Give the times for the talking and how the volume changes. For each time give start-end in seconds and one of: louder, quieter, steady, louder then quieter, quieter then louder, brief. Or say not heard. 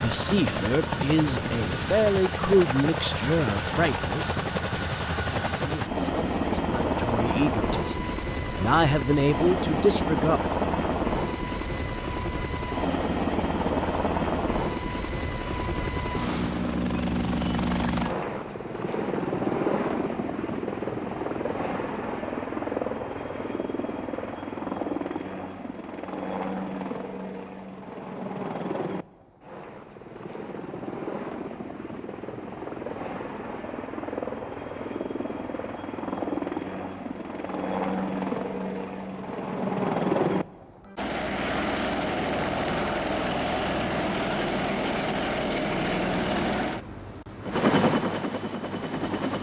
0.0-10.4 quieter then louder.